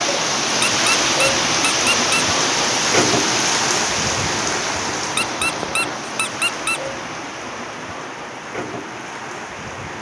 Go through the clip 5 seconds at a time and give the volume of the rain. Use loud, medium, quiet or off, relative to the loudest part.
loud, medium.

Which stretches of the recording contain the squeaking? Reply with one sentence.
The squeaking can be heard from 0.5 to 2.2 s and from 5.0 to 6.8 s.